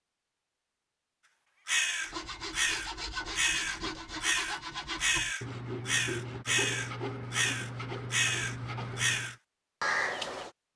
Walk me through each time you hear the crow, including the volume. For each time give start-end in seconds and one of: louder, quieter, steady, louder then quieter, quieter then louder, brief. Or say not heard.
1.6-10.5 steady.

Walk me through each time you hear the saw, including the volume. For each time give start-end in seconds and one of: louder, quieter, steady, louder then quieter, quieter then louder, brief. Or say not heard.
2.0-9.4 steady.